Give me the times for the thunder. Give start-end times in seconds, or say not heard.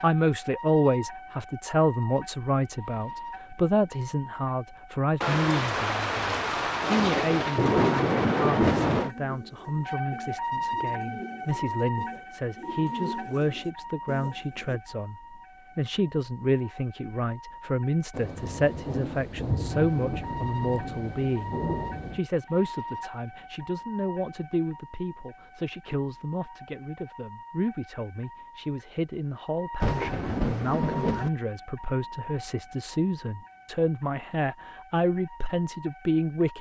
5.2-9.1, 18.1-22.2, 29.8-31.3.